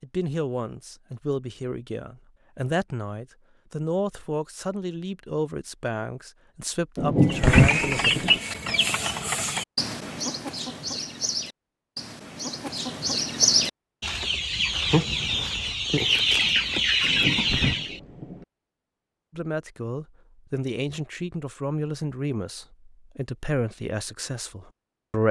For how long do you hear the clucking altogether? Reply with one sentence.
You can hear the clucking for 11 seconds altogether.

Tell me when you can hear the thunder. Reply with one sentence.
You can hear the thunder from 7.0 to 8.4 s and from 17.0 to 18.4 s.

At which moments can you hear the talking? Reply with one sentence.
The talking can be heard from 0.0 to 8.1 s and from 19.3 to 25.2 s.